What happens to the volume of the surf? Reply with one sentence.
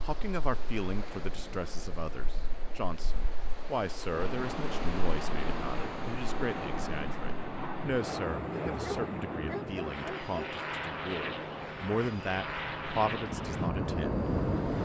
The loudness of the surf goes up.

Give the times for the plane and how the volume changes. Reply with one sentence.
You can hear the plane from 4.1 to 14.7 s, at a steady volume.